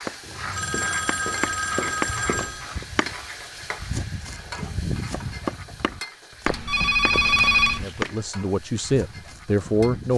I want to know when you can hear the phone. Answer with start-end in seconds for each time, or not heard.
0.2-2.9, 6.5-7.8.